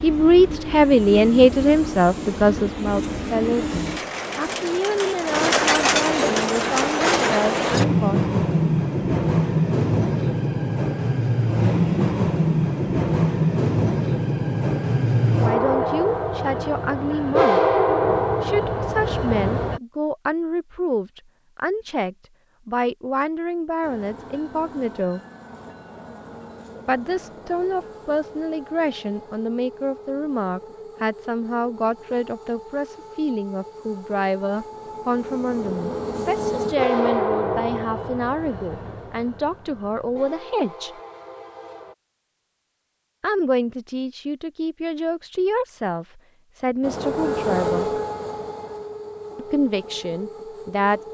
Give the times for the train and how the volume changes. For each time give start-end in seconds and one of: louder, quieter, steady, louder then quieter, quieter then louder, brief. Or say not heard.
0.0-19.8 louder
23.8-42.0 louder then quieter
46.8-51.1 quieter.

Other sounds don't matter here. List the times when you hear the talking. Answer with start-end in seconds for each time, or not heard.
0.0-8.2, 15.4-17.8, 18.4-25.2, 26.9-40.9, 43.2-48.0, 49.4-51.0.